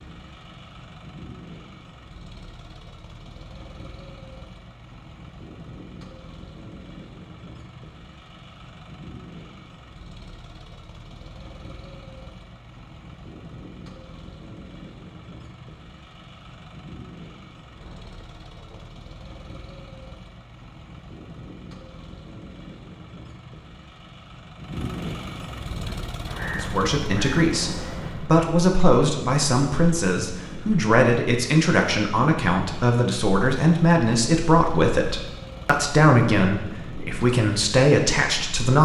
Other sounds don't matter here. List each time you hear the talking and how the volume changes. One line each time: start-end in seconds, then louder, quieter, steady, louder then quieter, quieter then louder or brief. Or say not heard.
26.6-38.8 steady.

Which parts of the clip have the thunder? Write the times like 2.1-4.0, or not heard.
17.6-18.9.